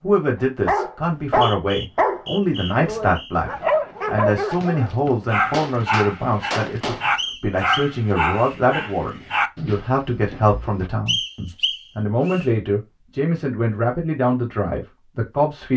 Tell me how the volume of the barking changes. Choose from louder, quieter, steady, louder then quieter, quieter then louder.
quieter.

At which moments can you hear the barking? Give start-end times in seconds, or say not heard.
0.7-10.9.